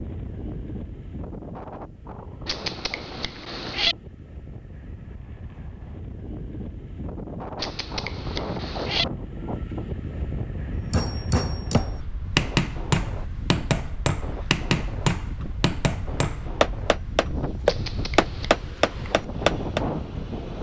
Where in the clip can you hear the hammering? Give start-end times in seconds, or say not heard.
10.9-19.8.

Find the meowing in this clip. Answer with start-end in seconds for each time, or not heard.
2.5-4.0, 7.5-9.1, 17.6-18.6.